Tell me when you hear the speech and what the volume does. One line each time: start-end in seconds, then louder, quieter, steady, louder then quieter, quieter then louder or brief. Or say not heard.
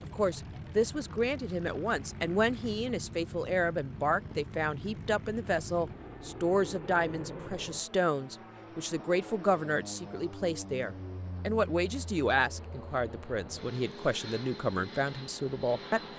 0.0-16.0 steady.